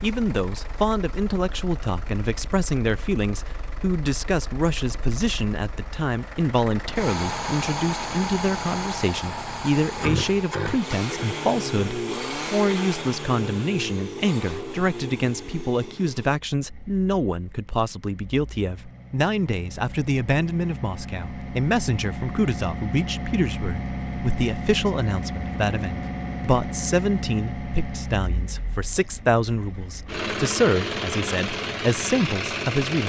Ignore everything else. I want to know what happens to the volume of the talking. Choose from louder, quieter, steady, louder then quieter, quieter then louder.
steady.